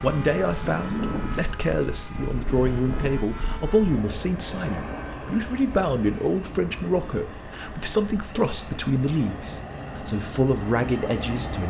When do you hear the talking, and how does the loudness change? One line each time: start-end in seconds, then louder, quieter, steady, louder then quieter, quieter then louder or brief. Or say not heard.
0.0-11.6 steady.